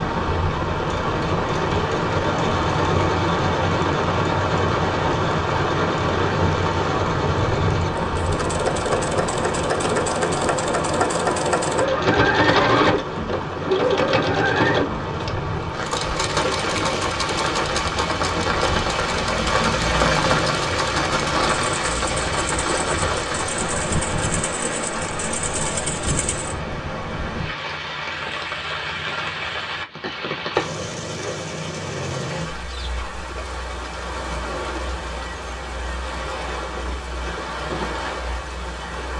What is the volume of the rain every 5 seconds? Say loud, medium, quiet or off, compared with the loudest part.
loud, loud, medium, loud, loud, medium, medium, medium.